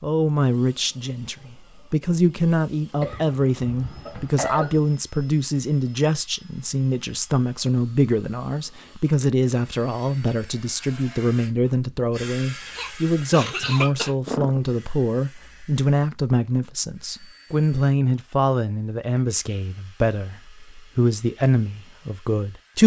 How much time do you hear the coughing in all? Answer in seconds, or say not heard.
4 s.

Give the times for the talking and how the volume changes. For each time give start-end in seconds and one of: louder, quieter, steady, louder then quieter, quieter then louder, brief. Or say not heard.
0.0-22.8 steady.